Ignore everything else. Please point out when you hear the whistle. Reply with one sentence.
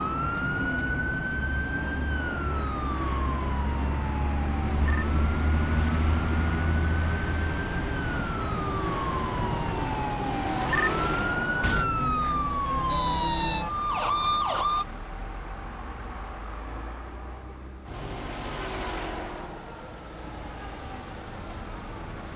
The whistle can be heard from 12.8 to 13.7 s.